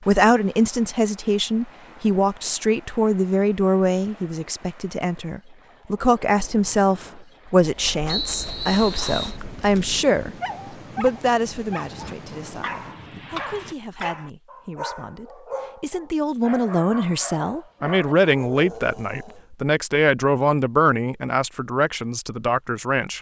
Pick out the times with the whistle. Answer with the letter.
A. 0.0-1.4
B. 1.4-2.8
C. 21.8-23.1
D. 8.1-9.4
D.